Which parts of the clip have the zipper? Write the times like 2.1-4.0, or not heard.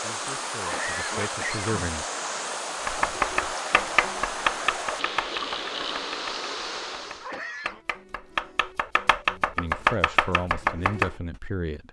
not heard.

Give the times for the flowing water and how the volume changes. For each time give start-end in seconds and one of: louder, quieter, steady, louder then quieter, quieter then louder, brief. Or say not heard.
0.0-7.3 steady.